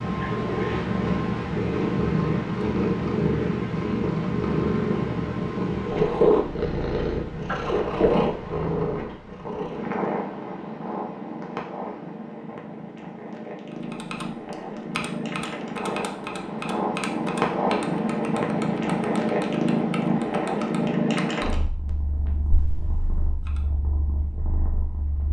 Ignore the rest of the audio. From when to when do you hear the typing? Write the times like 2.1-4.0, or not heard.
13.9-23.1.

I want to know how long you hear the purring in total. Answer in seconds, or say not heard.
25 s.